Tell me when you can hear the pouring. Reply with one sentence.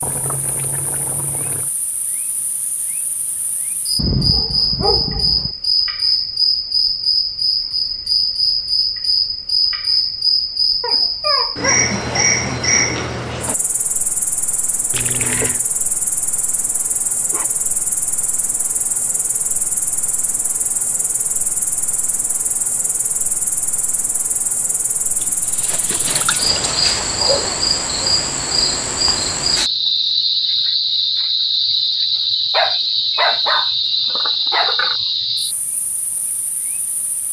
You can hear the pouring from 0.0 to 1.7 s, from 14.9 to 15.6 s and from 25.2 to 27.0 s.